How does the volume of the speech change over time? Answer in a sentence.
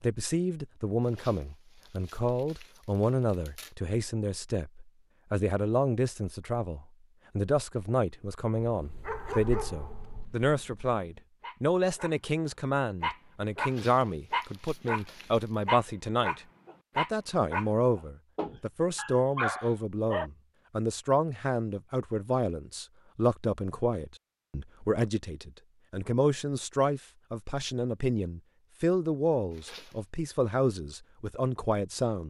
The loudness of the speech stays about the same.